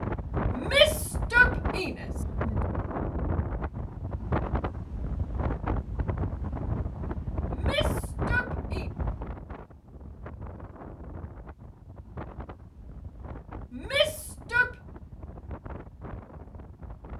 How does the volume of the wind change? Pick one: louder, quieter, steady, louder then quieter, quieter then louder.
quieter.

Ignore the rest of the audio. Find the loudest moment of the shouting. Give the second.
1 s.